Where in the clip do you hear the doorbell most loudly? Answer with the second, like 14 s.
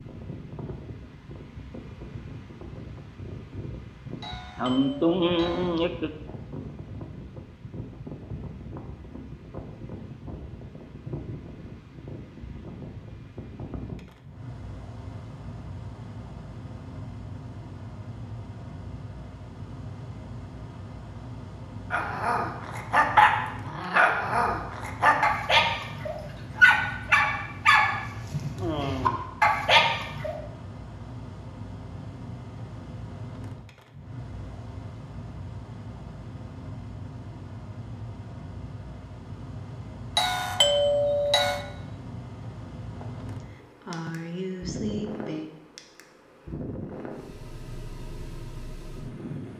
41 s.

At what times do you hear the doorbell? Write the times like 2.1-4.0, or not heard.
4.2-5.8, 40.1-41.6.